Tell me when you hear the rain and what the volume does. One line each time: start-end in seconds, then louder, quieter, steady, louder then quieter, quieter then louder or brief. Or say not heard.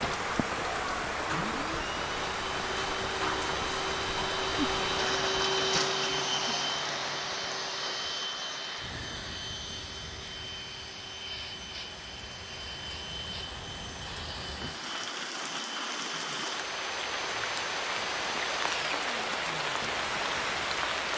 0.0-21.1 quieter then louder.